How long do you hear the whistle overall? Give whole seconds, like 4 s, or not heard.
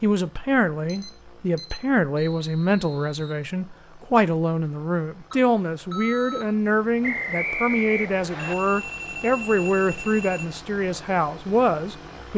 3 s.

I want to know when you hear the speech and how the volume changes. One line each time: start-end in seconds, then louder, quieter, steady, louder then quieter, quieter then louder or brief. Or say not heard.
0.0-12.3 steady.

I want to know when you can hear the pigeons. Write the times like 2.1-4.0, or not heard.
not heard.